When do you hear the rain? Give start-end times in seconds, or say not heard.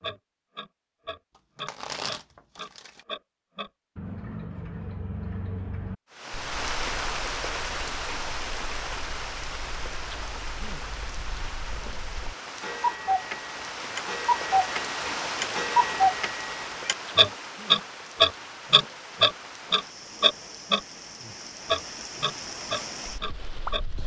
6.1-24.0.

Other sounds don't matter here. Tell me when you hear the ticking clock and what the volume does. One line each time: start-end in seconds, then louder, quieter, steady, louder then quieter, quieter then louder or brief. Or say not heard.
0.0-20.8 quieter then louder
21.6-23.8 brief.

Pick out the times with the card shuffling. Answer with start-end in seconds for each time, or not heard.
1.4-3.0.